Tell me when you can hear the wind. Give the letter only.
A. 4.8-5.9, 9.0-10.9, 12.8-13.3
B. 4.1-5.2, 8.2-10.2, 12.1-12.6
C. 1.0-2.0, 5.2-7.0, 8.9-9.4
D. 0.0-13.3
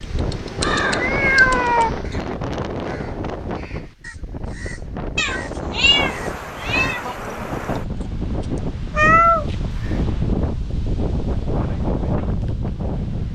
D.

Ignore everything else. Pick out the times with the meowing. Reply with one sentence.
The meowing can be heard from 1.0 to 2.0 s, from 5.2 to 7.0 s and from 8.9 to 9.4 s.